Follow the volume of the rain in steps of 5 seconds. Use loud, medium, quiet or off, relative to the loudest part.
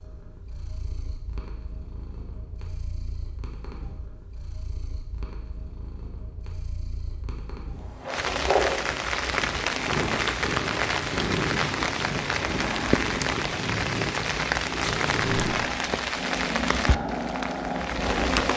off, loud, loud, loud.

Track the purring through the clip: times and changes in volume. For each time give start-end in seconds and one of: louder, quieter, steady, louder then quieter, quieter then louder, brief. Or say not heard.
0.0-18.5 louder.